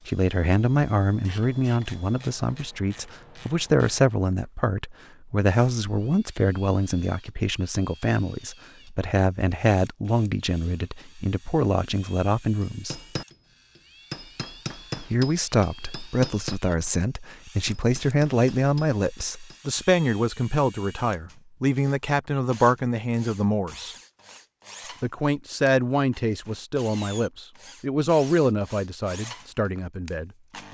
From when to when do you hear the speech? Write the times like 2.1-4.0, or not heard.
0.1-12.9, 15.0-23.9, 25.0-30.6.